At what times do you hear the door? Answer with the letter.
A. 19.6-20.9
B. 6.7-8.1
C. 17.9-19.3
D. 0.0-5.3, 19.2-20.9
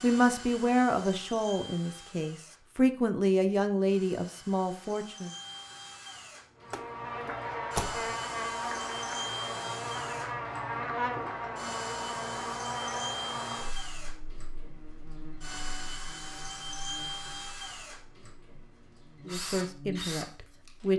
B.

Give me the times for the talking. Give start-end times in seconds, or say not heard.
0.0-5.3, 19.2-20.9.